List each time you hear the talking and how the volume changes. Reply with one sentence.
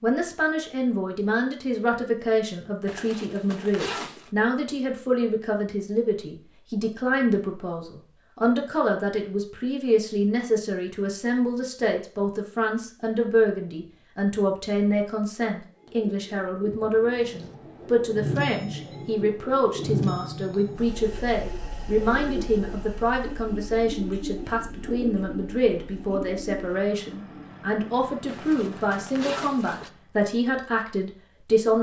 The talking can be heard from 0.0 to 31.7 s, at a steady volume.